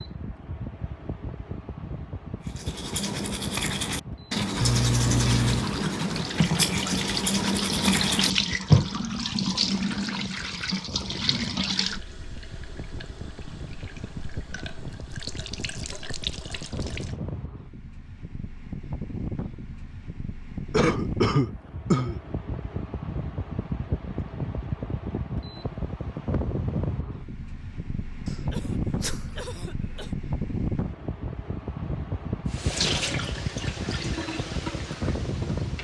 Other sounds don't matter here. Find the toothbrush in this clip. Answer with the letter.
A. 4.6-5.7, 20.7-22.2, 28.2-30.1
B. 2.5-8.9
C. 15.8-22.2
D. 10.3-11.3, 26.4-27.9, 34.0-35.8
B.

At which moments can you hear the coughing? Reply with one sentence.
You can hear the coughing from 4.6 to 5.7 s, from 20.7 to 22.2 s and from 28.2 to 30.1 s.